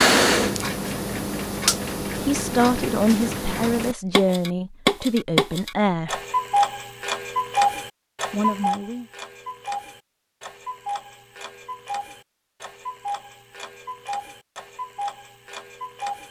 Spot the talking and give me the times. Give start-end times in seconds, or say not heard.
2.2-6.2, 8.3-9.1.